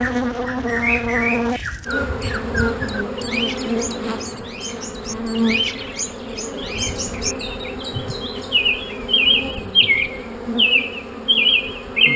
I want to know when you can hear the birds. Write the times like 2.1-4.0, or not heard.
0.0-12.1.